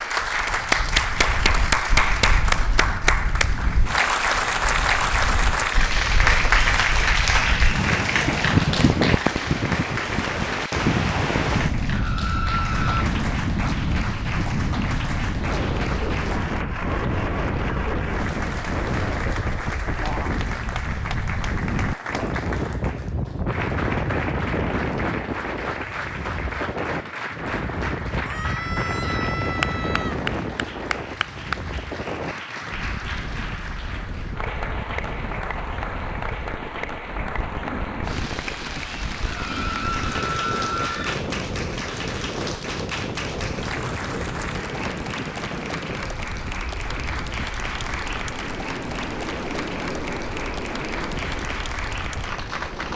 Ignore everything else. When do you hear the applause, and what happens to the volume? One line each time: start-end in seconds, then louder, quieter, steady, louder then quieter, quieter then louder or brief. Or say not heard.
0.0-52.9 quieter.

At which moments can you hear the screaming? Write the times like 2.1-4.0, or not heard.
11.9-13.1, 28.2-30.2, 39.2-41.1.